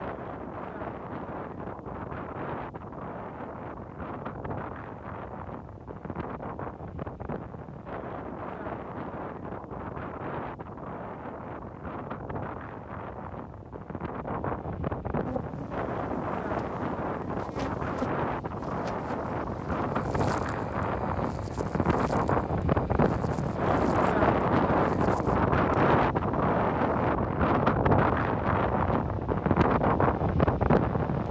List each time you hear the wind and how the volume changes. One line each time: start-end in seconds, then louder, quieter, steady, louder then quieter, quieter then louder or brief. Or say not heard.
0.0-31.2 louder.